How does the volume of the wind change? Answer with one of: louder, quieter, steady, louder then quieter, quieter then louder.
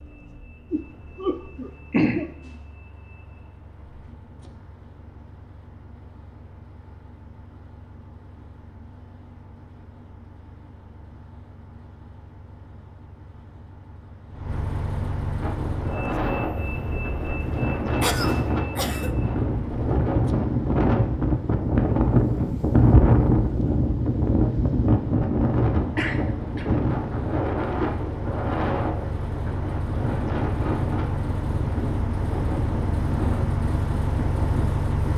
louder then quieter.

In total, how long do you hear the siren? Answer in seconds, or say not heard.
not heard.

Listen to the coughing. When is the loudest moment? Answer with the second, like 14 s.
2 s.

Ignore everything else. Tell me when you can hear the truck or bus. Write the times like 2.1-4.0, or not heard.
0.0-35.1.